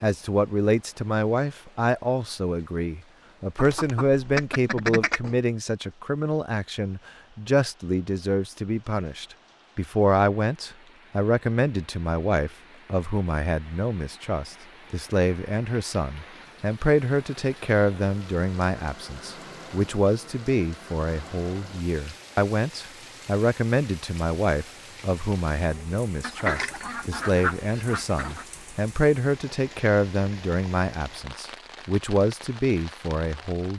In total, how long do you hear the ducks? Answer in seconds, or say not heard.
4 s.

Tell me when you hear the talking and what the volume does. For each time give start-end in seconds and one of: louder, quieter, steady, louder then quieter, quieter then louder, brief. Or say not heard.
0.0-33.7 steady.